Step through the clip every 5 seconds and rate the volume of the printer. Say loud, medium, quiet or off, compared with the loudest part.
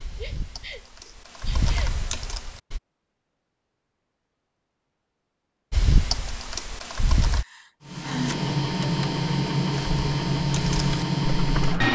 off, loud, loud.